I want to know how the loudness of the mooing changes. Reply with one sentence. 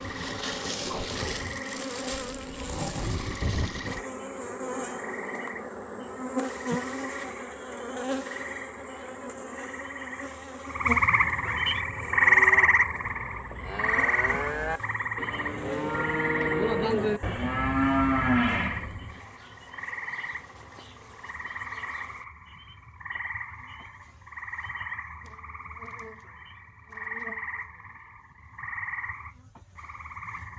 The loudness of the mooing goes up.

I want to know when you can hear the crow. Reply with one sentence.
The crow can't be heard in this clip.